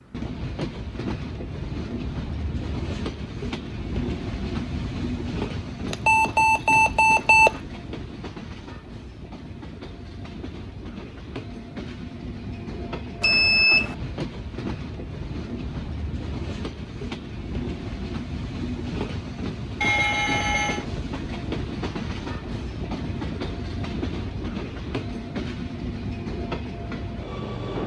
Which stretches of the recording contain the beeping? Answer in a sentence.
The beeping can be heard from 5.9 to 7.5 s, from 13.2 to 13.9 s and from 19.8 to 20.9 s.